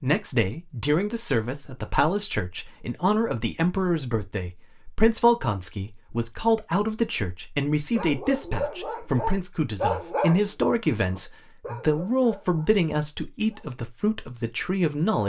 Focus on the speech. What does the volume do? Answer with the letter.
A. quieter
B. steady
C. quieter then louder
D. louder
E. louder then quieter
B.